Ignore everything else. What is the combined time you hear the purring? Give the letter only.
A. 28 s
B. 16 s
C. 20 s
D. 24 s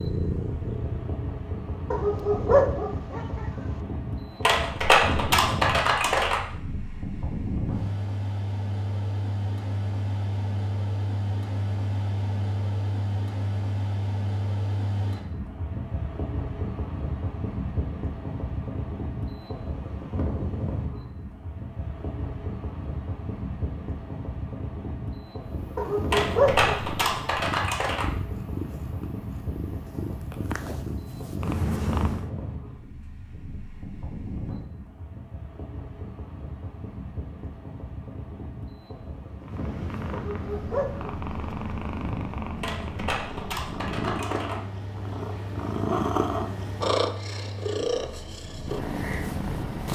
C.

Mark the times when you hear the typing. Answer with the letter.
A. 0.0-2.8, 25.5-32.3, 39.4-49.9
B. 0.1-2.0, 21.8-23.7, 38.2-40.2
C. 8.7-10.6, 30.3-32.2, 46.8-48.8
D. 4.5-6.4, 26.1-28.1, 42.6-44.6
D.